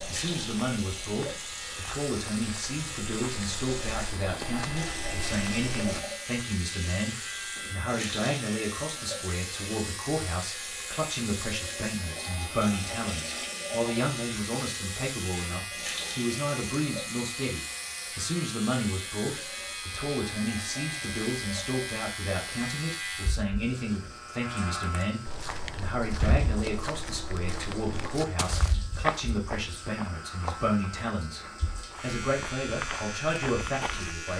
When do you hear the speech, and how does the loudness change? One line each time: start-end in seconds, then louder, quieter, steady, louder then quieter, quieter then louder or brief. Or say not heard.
0.1-34.3 steady.